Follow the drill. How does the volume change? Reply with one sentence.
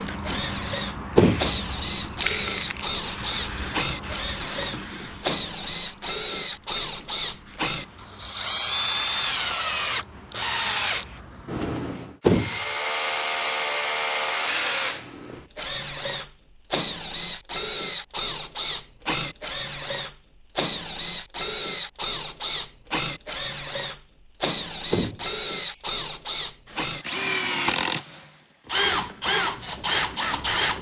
The volume of the drill stays about the same.